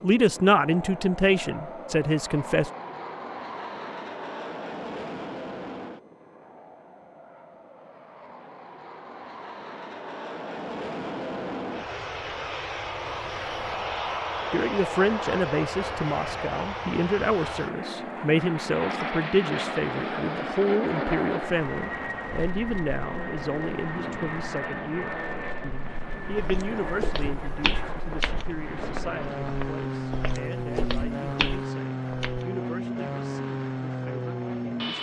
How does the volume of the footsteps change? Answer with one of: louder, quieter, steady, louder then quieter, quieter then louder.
quieter then louder.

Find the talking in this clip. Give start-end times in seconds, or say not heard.
0.0-2.7, 14.5-34.9.